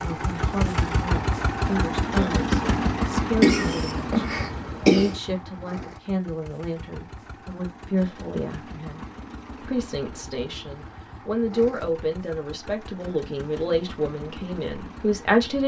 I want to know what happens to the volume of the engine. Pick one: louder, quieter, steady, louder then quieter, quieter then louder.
quieter.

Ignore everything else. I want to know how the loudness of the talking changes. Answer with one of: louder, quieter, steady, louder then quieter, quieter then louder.
louder.